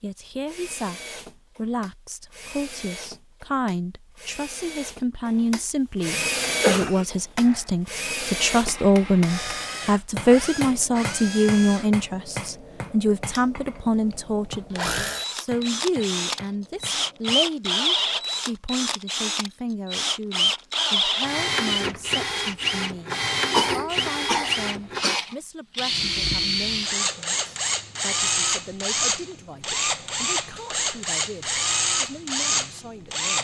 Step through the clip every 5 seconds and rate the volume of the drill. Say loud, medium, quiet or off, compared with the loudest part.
quiet, medium, medium, loud, loud, loud, loud.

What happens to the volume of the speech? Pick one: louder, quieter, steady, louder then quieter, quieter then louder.
louder then quieter.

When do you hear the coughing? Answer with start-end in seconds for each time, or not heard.
6.1-7.0, 23.5-25.2.